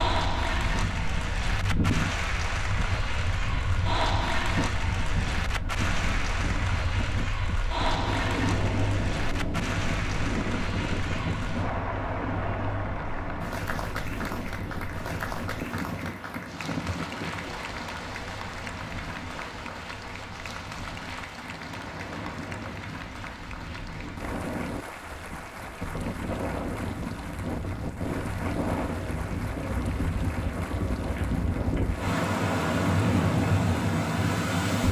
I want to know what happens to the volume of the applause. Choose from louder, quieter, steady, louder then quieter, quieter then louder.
quieter.